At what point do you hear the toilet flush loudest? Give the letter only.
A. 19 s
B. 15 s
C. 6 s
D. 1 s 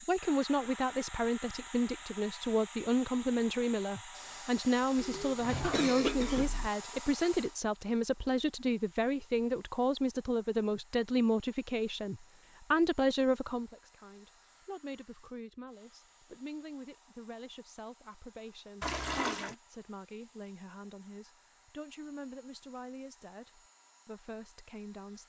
A.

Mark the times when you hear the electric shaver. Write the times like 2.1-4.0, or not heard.
not heard.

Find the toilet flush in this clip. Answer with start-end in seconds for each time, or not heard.
5.0-5.9, 18.8-19.6.